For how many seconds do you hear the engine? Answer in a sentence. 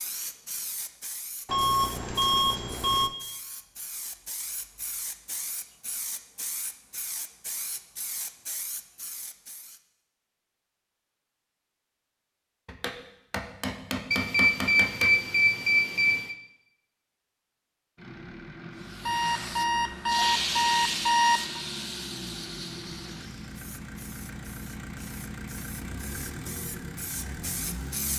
You can hear the engine for 10 seconds altogether.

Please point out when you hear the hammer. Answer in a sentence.
You can hear the hammer from 12.7 to 15.2 s.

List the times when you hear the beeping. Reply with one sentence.
You can hear the beeping from 1.4 to 3.1 s, from 14.1 to 16.4 s and from 19.1 to 21.6 s.